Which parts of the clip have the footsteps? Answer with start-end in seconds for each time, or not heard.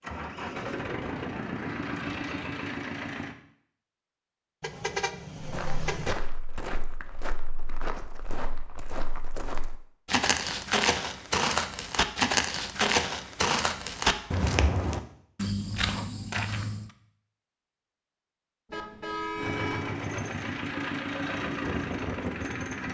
5.4-16.9.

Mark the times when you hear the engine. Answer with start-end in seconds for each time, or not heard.
0.0-3.4, 19.4-22.8.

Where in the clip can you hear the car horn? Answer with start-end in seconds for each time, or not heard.
4.6-6.2, 18.7-19.9.